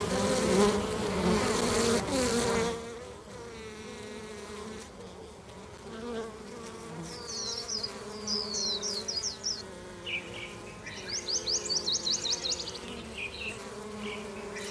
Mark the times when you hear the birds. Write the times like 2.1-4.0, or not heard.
7.0-14.6.